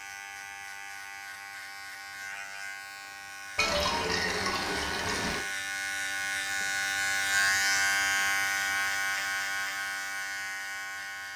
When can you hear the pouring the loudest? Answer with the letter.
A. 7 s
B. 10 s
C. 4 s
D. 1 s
C.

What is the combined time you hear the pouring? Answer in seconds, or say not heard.
2 s.